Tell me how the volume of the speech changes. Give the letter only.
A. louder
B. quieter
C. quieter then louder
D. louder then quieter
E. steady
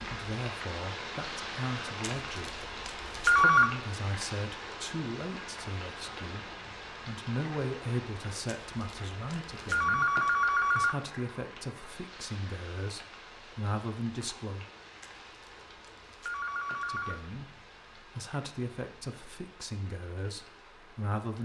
E.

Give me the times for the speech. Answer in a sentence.
The speech can be heard from 0.1 to 14.7 s and from 16.9 to 21.4 s.